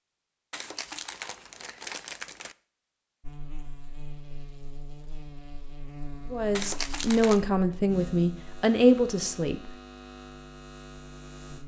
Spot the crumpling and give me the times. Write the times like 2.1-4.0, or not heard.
0.5-2.5, 6.5-7.5.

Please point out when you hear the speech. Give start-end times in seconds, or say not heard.
6.3-9.8.